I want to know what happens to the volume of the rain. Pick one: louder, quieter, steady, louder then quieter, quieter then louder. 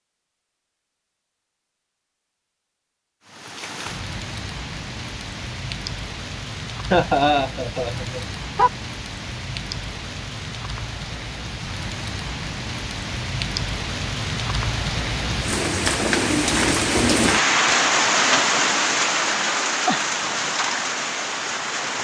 louder.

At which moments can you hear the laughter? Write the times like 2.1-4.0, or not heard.
6.9-8.7.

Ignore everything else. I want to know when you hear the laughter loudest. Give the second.
7 s.